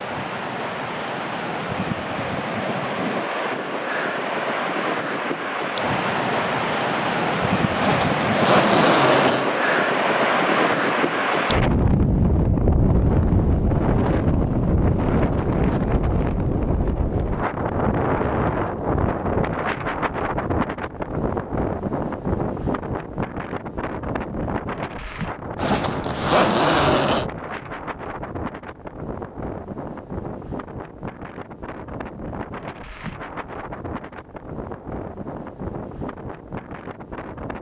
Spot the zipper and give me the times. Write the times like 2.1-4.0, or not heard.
7.8-9.5, 25.6-27.2.